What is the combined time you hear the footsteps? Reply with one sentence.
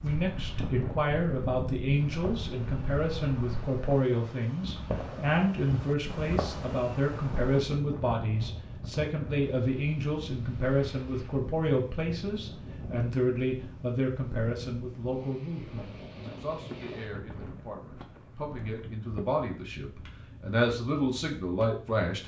You can hear the footsteps for 3 seconds altogether.